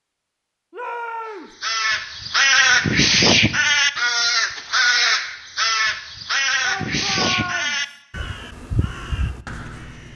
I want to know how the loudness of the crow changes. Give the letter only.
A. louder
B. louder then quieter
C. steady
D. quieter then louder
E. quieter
E.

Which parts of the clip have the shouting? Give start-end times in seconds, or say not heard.
0.7-1.6, 6.6-8.0.